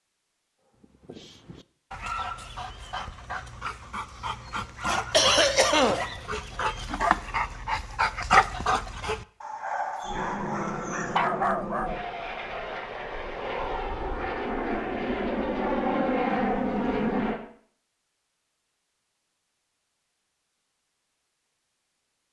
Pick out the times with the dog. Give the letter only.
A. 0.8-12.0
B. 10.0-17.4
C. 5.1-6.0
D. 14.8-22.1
A.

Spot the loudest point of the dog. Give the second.
8 s.